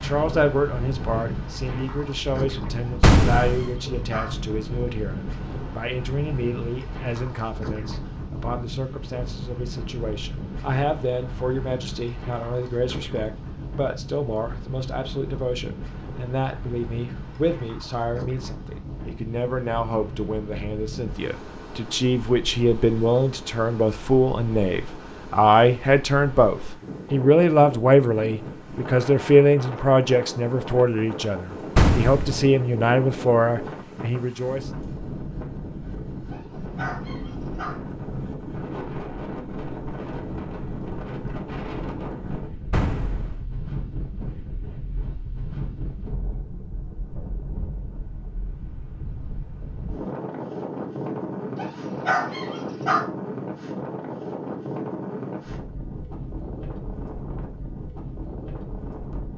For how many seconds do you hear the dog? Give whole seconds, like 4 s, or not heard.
5 s.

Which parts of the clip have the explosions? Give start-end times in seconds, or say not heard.
3.0-3.8, 31.8-32.5, 42.7-43.5.